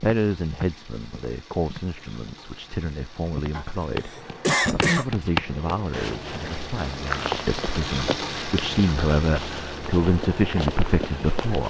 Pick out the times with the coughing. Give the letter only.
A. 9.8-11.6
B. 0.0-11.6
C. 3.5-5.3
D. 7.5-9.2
C.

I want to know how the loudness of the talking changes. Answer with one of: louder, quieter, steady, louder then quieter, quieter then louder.
louder.